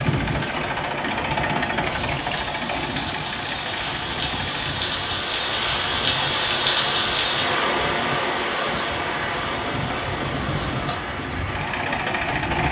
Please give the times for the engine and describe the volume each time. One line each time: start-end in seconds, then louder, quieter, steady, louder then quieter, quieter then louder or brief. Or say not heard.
0.0-12.6 quieter then louder.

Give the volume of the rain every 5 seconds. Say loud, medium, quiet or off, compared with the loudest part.
medium, loud, medium.